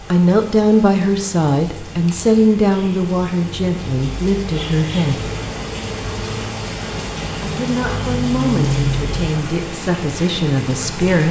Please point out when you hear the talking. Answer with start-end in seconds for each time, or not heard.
0.1-5.3, 7.4-11.2.